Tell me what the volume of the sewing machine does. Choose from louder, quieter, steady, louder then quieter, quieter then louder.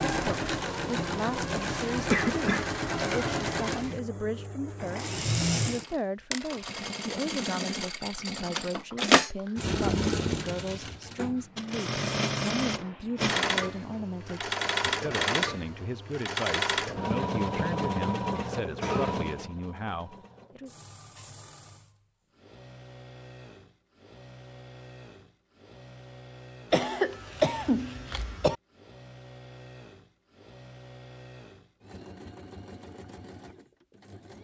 quieter.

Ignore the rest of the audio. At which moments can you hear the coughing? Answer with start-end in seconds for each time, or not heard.
2.1-2.6, 18.3-19.4, 26.7-28.6.